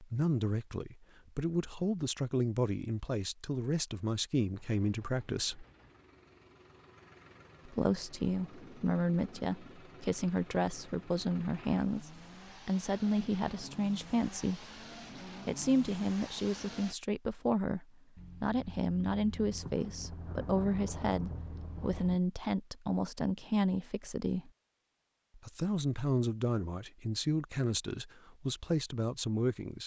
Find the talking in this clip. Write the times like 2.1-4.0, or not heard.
0.0-5.7, 7.7-14.7, 15.4-24.5, 25.4-29.8.